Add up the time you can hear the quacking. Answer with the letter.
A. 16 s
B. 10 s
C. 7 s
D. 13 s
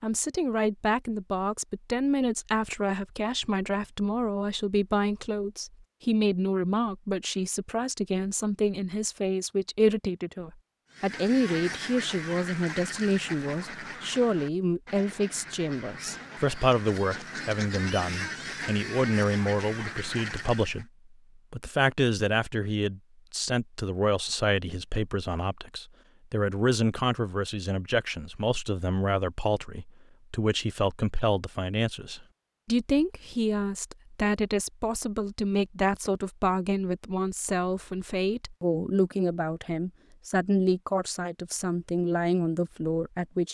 B.